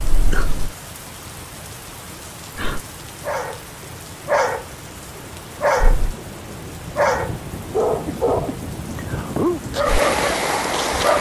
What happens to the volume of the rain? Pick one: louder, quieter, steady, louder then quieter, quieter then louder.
louder.